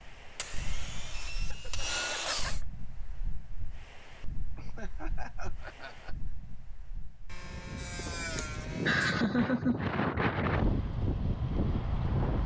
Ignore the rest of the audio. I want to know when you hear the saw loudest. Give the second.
2 s.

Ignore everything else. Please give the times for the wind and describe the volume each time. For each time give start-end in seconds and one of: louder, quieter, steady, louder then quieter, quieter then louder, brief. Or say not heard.
0.0-12.4 louder.